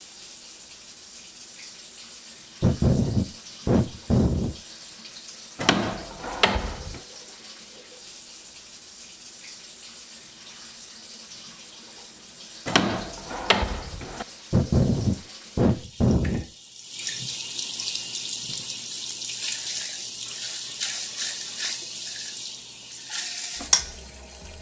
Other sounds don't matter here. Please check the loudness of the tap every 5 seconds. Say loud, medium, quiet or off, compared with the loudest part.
quiet, quiet, quiet, loud, loud.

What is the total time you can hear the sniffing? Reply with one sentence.
The sniffing can be heard for 4 seconds in total.